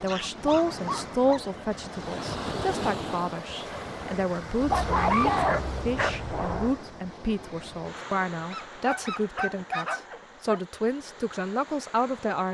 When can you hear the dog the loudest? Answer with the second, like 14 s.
5 s.